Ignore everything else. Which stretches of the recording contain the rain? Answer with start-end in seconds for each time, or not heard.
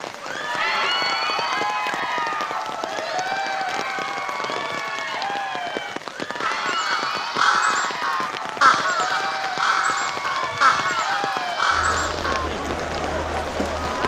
0.0-14.0.